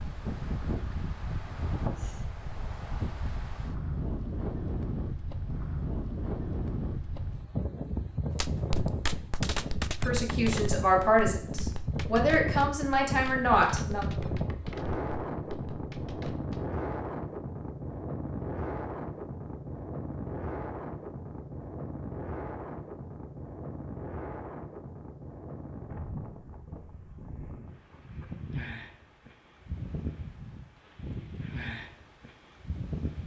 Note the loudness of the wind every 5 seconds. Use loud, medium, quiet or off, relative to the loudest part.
loud, loud, loud, loud, medium, medium, medium.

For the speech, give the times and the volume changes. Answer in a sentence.
The speech can be heard from 10.0 to 14.1 s, at a steady volume.